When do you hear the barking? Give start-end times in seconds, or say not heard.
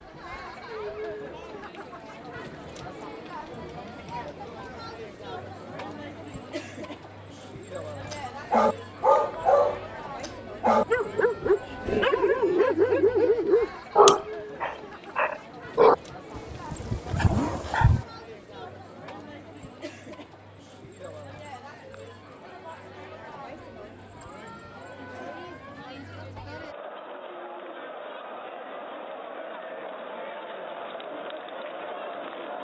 8.1-18.1.